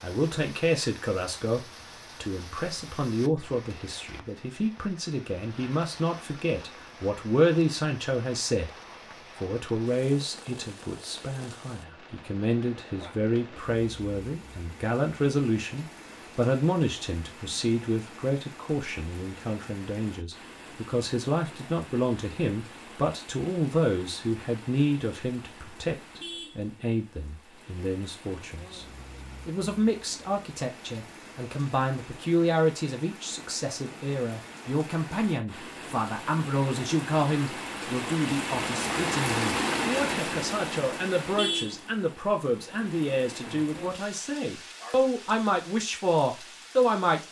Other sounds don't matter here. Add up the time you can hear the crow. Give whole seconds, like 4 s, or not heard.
not heard.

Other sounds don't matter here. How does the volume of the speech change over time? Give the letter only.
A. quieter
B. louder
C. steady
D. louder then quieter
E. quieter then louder
C.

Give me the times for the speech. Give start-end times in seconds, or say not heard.
0.0-8.7, 9.4-28.9, 29.4-47.2.